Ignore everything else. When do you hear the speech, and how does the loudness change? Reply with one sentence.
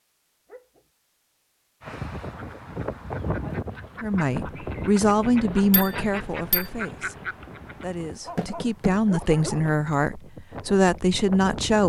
The speech can be heard from 4.0 to 11.8 s, getting quieter then louder.